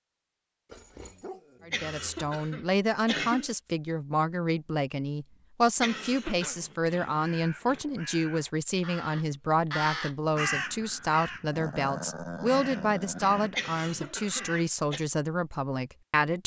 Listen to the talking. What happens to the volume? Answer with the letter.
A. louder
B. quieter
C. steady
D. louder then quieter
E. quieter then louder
C.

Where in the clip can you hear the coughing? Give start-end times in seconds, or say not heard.
1.7-3.5, 5.8-6.5, 13.6-15.0.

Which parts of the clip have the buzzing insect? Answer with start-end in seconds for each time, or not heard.
not heard.